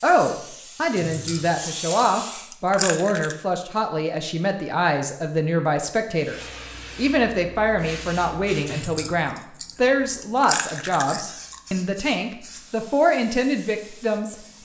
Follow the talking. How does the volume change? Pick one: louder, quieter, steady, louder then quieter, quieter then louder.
steady.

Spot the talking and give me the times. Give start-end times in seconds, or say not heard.
0.0-14.3.